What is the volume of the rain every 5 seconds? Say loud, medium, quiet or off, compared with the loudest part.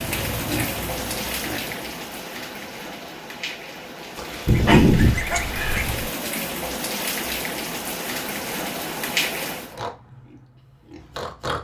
loud, loud, off.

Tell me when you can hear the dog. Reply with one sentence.
The dog can be heard from 4.2 to 6.0 s.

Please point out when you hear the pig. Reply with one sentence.
The pig can be heard from 0.0 to 1.8 s and from 9.6 to 11.5 s.